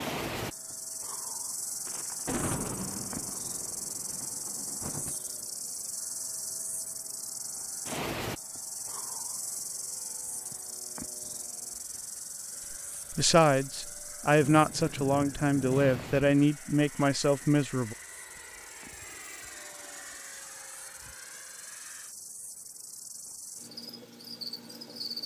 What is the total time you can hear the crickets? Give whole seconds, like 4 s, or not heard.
25 s.